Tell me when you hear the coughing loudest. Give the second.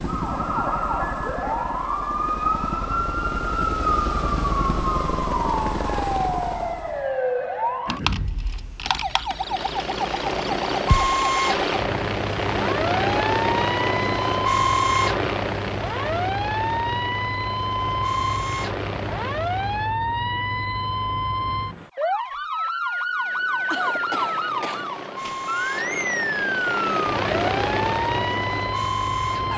24 s.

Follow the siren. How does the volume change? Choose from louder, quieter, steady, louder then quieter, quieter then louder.
steady.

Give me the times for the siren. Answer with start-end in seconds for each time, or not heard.
0.0-29.5.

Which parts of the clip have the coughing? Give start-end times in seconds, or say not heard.
7.8-8.2, 23.7-24.9.